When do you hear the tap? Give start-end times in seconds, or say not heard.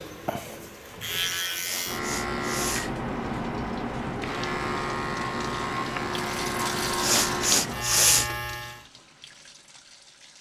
3.1-10.3.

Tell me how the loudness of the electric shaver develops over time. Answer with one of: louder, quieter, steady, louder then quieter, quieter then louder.
steady.